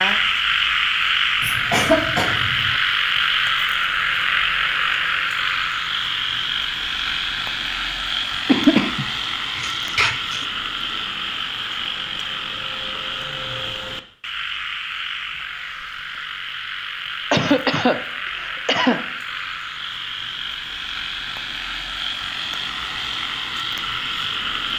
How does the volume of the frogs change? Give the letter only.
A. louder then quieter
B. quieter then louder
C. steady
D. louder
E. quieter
E.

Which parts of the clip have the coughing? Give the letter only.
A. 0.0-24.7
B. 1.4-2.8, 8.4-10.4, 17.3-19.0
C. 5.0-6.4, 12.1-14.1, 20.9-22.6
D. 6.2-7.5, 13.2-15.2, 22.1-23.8
B.